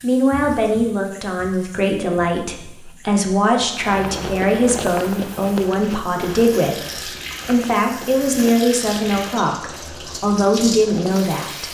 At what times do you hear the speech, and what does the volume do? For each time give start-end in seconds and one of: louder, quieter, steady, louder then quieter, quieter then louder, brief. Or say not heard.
0.0-11.6 steady.